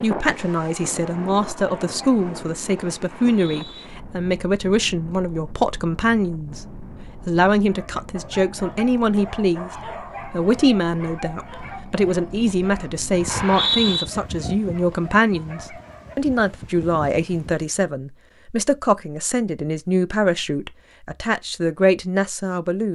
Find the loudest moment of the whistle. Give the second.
14 s.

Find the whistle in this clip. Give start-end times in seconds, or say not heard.
3.1-3.9, 13.2-14.1.